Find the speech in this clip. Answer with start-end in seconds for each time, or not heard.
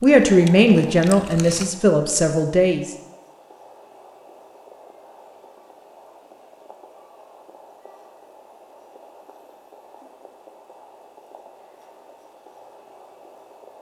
0.0-3.0.